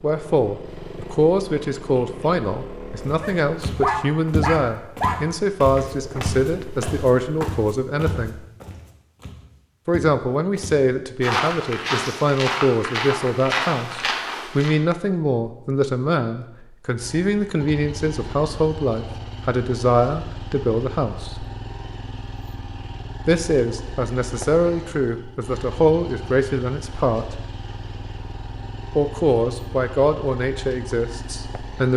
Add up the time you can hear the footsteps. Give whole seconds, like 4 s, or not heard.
12 s.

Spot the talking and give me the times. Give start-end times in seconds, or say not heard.
0.0-8.4, 9.8-21.4, 23.2-27.4, 28.9-31.9.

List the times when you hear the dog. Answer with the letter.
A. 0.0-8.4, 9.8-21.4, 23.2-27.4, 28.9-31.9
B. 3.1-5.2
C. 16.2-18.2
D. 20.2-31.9
B.